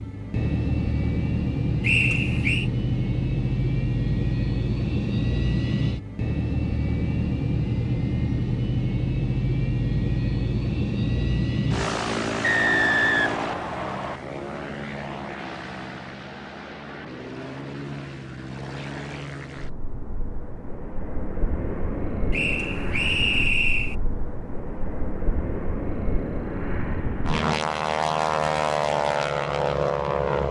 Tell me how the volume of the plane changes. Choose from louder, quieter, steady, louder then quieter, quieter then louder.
quieter then louder.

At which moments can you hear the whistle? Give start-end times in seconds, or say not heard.
1.8-2.7, 12.4-14.2, 22.3-23.9.